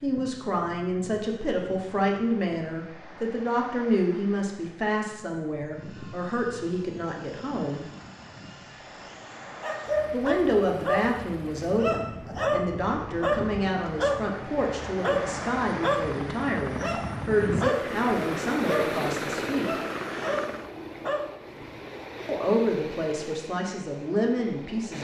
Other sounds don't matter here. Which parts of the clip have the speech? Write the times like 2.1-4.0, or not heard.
0.0-7.8, 10.1-19.8, 22.2-24.9.